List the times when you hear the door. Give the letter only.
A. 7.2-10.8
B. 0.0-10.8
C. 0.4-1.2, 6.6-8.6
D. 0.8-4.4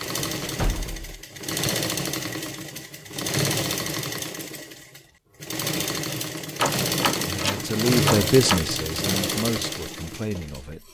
C.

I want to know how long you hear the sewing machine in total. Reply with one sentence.
The sewing machine can be heard for 11 seconds in total.